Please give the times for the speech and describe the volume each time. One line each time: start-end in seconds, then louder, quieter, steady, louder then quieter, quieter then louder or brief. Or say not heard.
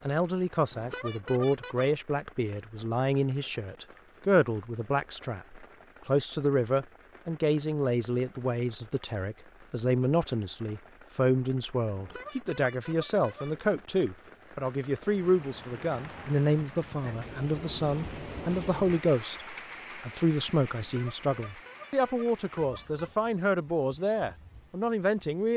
0.0-25.5 steady.